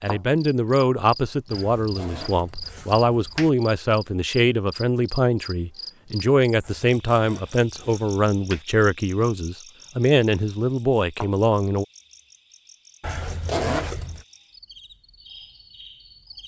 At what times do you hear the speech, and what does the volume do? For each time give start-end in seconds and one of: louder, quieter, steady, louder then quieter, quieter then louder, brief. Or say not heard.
0.0-11.8 steady.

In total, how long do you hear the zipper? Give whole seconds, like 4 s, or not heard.
5 s.